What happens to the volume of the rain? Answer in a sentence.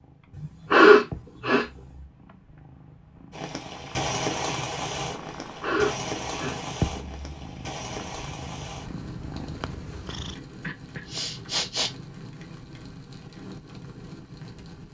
The volume of the rain goes down.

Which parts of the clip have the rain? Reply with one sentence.
The rain can be heard from 3.3 to 14.8 s.